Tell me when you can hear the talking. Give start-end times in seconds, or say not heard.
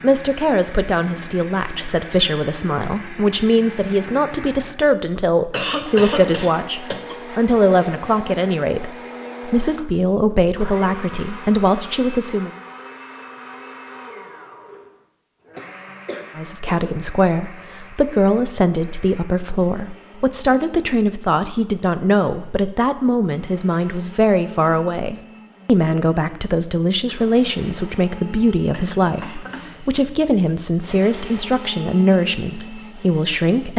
0.0-12.5, 16.4-33.7.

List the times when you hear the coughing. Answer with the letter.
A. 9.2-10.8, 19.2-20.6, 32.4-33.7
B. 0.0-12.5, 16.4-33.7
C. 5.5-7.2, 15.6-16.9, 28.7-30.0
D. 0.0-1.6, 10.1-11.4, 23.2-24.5
C.